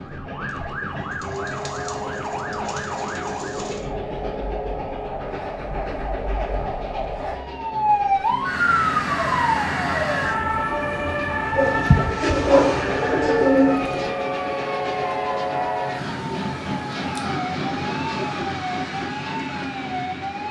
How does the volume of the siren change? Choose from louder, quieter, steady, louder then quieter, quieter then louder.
louder then quieter.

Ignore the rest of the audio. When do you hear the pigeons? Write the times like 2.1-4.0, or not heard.
0.9-3.9, 11.6-14.2.